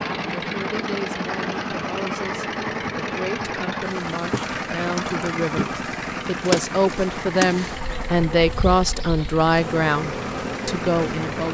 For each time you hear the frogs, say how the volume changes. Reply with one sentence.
The frogs can't be heard in this clip.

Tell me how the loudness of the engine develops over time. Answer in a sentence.
The volume of the engine goes down.